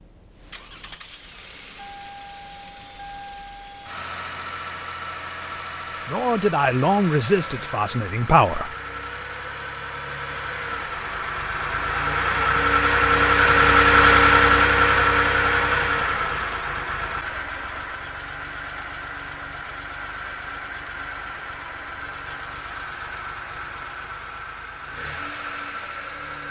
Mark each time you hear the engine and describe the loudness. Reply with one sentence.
You can hear the engine from 0.0 to 26.4 s, getting louder then quieter.